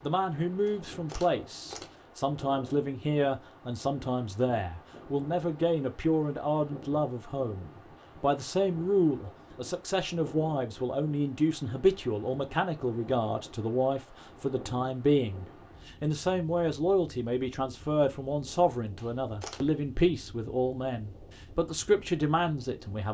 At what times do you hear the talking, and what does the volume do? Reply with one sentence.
You can hear the talking from 0.0 to 23.1 s, at a steady volume.